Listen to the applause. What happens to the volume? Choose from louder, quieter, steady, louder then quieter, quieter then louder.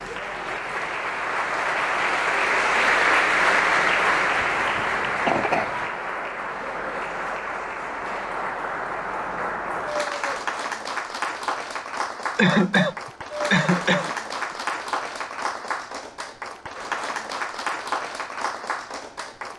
quieter.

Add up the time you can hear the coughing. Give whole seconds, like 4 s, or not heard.
3 s.